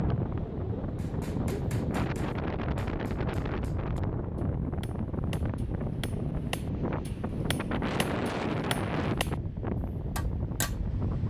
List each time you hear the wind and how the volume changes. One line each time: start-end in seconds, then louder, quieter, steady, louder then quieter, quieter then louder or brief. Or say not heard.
0.0-11.2 steady.